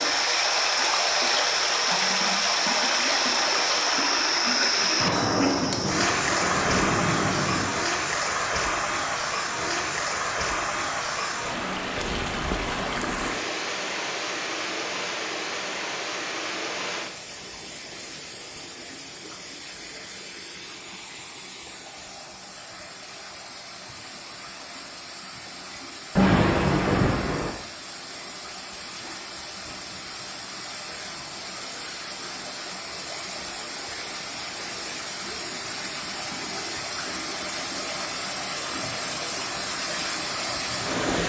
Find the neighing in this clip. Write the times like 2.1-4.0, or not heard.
not heard.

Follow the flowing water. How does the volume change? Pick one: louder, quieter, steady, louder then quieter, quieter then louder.
quieter then louder.